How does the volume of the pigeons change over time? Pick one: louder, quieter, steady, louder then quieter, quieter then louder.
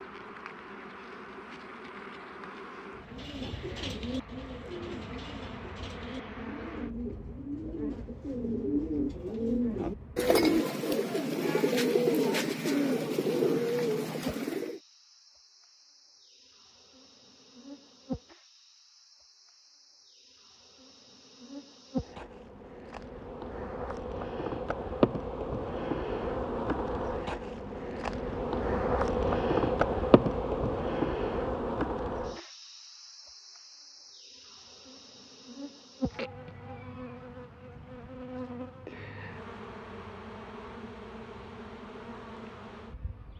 louder.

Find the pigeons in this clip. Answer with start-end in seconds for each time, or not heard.
3.0-14.8.